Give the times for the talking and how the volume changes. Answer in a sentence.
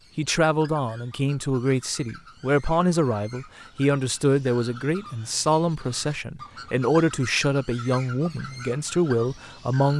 The talking can be heard from 0.1 to 9.9 s, at a steady volume.